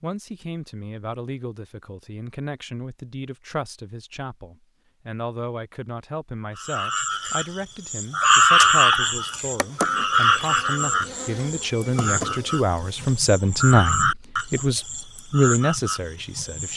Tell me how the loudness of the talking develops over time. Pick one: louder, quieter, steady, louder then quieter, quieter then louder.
louder.